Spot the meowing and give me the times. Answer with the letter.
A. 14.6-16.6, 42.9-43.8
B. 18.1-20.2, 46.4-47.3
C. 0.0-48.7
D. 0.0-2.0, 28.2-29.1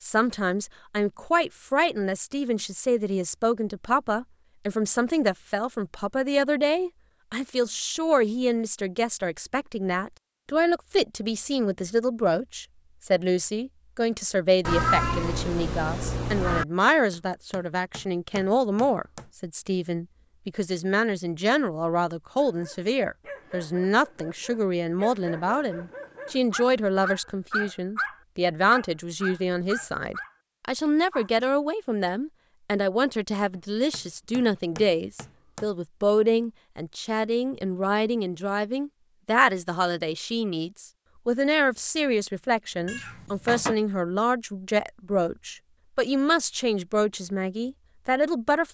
A.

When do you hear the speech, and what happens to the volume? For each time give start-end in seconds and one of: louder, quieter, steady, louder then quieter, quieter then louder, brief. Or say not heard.
0.0-48.7 steady.